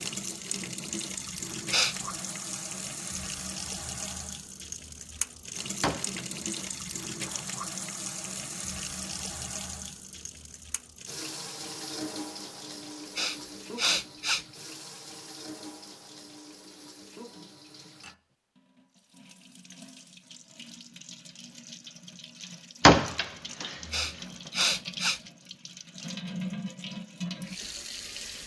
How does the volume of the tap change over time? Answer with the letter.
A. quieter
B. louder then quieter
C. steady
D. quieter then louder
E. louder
D.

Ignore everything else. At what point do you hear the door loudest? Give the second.
23 s.